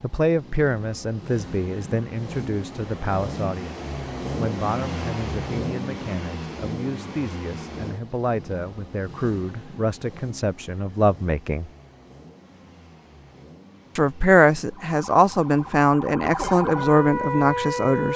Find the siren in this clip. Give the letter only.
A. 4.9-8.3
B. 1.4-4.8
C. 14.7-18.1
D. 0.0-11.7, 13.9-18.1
C.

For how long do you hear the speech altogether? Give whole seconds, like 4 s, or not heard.
16 s.